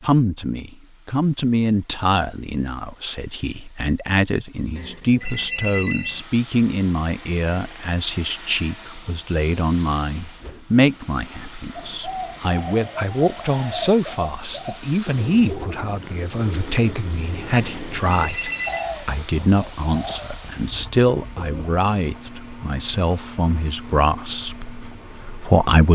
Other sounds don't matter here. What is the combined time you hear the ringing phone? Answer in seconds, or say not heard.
3 s.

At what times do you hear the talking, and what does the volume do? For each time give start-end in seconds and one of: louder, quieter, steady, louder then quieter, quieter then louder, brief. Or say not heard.
0.0-25.8 steady.